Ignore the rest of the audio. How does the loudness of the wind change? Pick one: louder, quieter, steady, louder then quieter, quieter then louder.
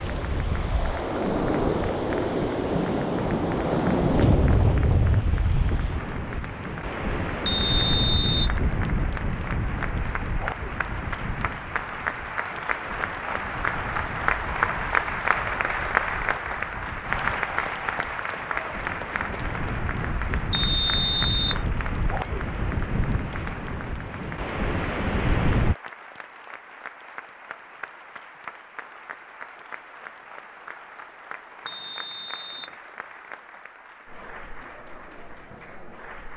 quieter then louder.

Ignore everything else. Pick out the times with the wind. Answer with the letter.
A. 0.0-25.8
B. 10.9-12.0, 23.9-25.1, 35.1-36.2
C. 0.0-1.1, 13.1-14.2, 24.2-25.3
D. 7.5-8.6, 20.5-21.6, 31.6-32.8
A.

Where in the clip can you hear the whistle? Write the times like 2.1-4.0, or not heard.
7.5-8.6, 20.5-21.6, 31.6-32.8.